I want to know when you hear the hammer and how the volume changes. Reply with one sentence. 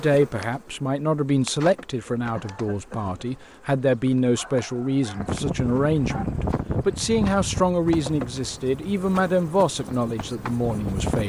The hammer can't be heard in this clip.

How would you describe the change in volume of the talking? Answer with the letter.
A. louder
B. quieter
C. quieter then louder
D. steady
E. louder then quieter
D.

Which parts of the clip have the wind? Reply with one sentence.
You can hear the wind from 5.1 to 11.2 s.